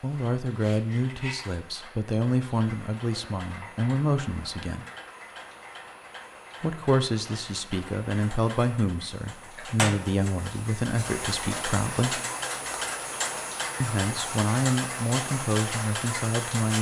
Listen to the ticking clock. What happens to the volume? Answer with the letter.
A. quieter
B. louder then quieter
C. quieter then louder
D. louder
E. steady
D.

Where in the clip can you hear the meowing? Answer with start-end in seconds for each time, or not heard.
not heard.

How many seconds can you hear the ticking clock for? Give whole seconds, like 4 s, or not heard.
17 s.